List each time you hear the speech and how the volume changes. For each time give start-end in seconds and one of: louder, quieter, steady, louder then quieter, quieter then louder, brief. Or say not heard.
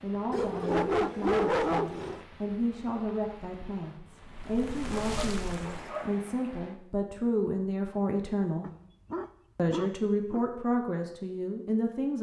0.0-8.7 louder
9.6-12.1 brief.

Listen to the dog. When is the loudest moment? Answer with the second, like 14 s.
1 s.